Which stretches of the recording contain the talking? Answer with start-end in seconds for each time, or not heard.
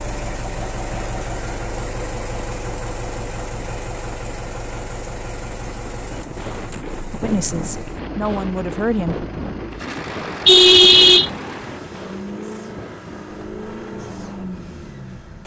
7.2-9.2.